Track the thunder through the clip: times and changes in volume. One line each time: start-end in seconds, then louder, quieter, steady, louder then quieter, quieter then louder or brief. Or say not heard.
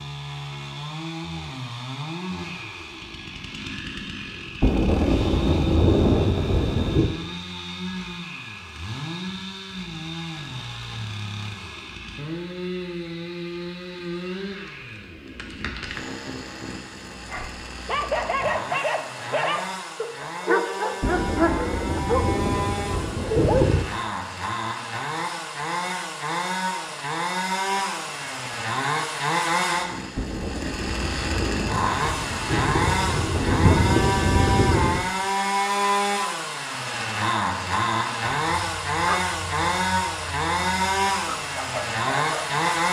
4.6-7.2 brief
21.0-23.9 brief
30.1-35.1 louder.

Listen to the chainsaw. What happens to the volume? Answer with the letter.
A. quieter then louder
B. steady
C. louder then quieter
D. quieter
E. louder
E.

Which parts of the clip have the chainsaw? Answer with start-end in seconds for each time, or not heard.
0.0-42.8.